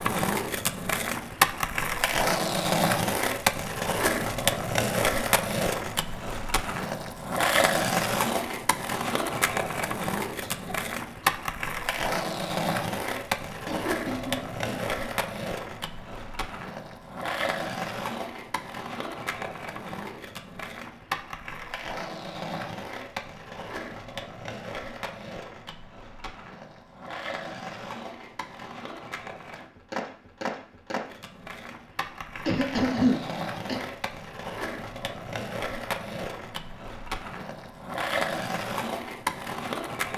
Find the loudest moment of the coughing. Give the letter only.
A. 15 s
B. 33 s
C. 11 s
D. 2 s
B.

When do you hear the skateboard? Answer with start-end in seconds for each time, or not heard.
0.0-40.1.